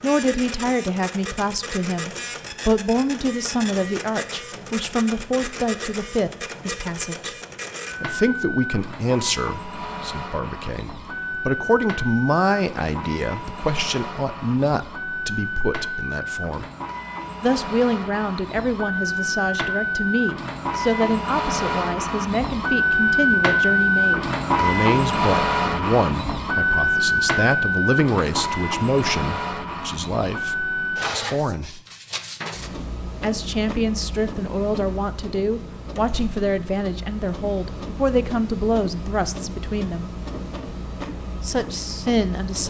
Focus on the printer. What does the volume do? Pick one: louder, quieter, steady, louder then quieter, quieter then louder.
louder then quieter.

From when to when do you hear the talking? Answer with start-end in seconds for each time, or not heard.
0.0-7.3, 8.0-16.6, 17.4-31.8, 33.2-40.1, 41.4-42.6.